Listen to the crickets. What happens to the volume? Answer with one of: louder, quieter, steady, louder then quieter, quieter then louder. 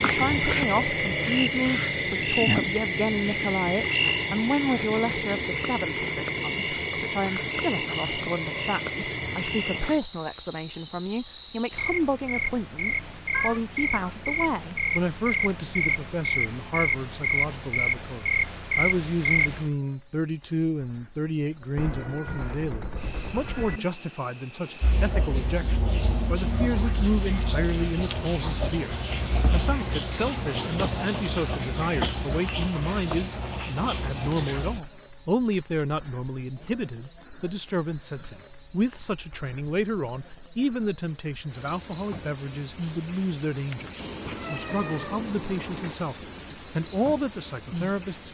louder.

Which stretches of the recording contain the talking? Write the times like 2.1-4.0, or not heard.
0.0-48.3.